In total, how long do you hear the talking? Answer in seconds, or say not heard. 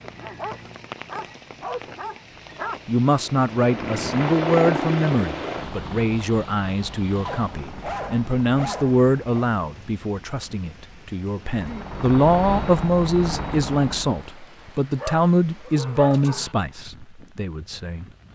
15 s.